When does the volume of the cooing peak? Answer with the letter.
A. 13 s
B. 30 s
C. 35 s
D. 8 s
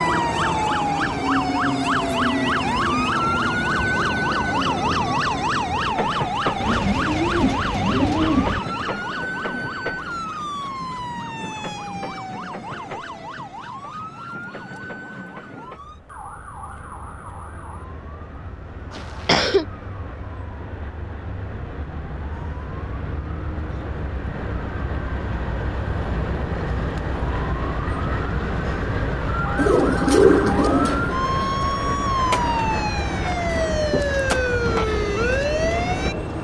B.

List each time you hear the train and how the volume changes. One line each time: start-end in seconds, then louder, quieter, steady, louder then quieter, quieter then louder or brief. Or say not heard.
0.0-36.3 quieter then louder.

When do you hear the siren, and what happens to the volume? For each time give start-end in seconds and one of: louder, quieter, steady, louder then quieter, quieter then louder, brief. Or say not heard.
0.0-36.3 quieter then louder.